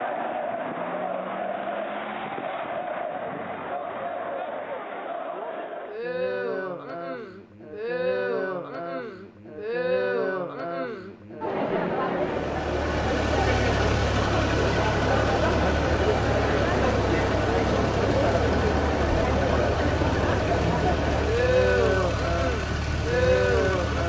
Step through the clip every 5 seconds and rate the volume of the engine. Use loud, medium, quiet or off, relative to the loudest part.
off, off, loud, loud, loud.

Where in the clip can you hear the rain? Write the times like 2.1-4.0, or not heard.
not heard.